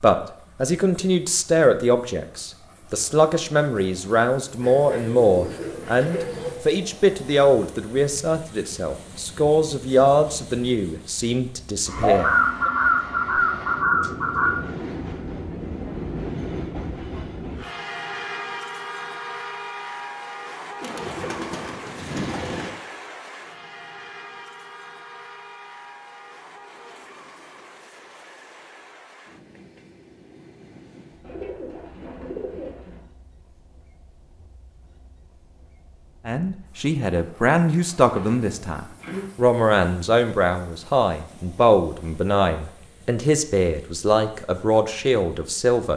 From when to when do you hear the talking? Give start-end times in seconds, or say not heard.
0.0-12.7, 36.2-45.9.